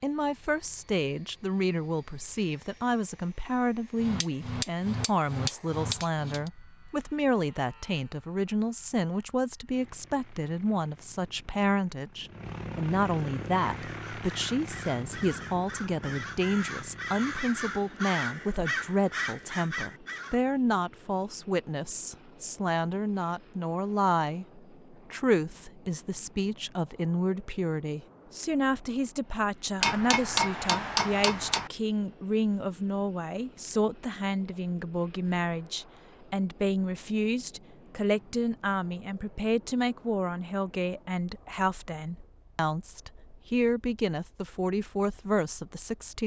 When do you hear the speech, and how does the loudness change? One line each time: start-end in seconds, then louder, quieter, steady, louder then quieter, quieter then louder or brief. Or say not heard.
0.0-46.2 steady.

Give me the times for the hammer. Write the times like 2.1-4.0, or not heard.
4.0-6.5, 29.8-31.7.